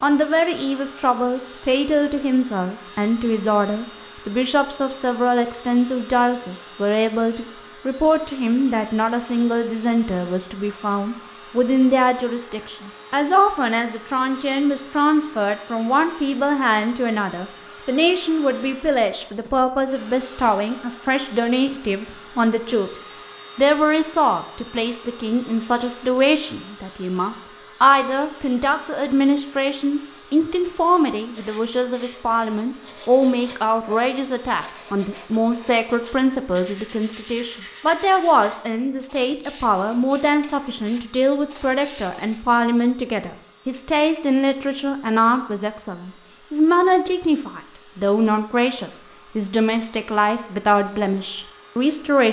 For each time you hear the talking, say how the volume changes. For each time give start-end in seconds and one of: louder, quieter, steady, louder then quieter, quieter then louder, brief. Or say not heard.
0.0-52.2 steady.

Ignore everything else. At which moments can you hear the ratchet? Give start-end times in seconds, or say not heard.
not heard.